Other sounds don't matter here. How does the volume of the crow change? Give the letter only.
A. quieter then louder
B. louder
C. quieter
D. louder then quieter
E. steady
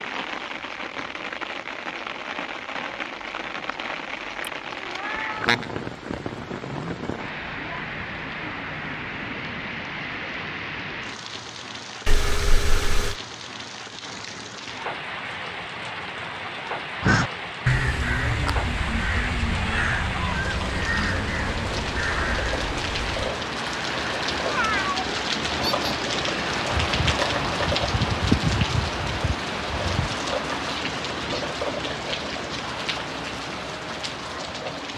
C.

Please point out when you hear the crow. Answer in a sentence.
You can hear the crow from 17.0 to 23.2 s.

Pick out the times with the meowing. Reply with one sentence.
The meowing can be heard from 4.5 to 5.7 s, from 12.1 to 13.2 s and from 24.4 to 25.9 s.